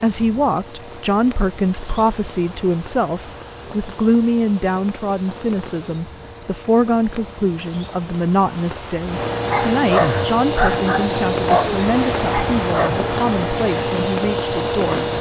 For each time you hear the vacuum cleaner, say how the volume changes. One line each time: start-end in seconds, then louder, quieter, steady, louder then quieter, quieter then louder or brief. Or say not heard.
0.0-15.1 louder.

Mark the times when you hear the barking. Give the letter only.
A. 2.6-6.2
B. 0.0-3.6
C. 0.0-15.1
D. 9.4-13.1
D.